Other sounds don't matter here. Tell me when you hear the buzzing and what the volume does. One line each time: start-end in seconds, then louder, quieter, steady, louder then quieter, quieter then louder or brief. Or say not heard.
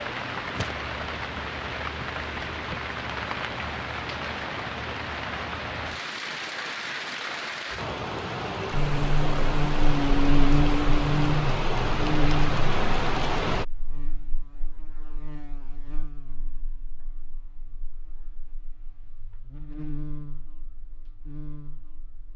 8.7-22.3 quieter then louder.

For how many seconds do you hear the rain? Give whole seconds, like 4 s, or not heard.
14 s.